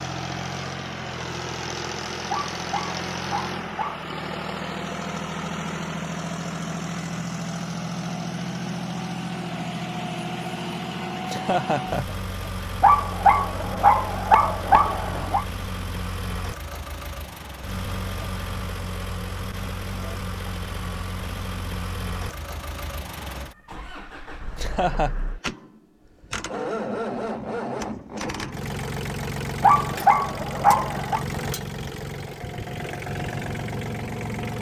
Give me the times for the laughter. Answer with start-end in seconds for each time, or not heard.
11.2-12.2, 24.6-25.1.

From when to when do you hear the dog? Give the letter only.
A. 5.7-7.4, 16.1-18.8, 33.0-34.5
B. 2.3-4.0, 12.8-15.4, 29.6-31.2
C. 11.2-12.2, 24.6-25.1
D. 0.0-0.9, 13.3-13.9
B.